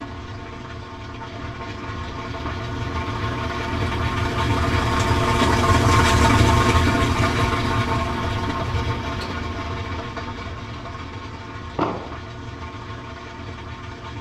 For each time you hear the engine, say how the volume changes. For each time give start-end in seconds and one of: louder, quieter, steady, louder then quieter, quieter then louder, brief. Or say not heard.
0.0-14.1 louder then quieter.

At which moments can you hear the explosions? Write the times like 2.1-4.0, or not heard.
11.8-12.2.